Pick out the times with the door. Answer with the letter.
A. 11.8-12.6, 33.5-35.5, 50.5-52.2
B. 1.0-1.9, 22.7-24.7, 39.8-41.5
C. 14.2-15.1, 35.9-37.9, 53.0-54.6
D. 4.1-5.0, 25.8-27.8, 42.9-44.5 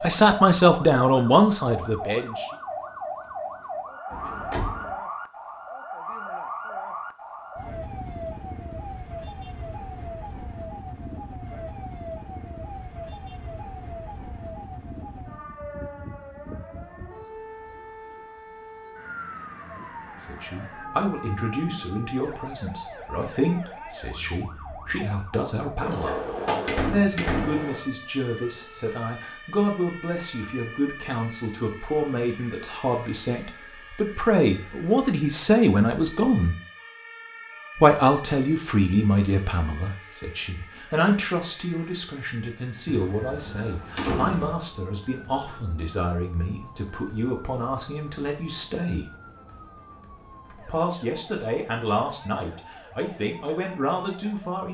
D.